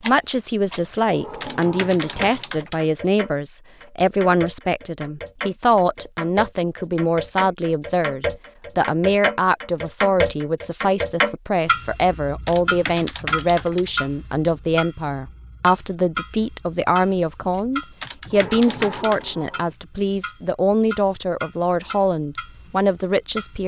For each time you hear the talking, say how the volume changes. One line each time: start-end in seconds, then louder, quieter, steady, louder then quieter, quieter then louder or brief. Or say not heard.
0.0-23.6 steady.